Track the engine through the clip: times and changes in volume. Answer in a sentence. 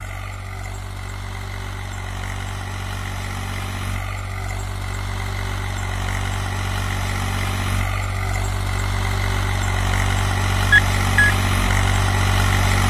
The engine can be heard from 0.0 to 12.8 s, getting louder.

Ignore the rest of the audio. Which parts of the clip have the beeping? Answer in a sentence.
You can hear the beeping from 10.7 to 11.3 s.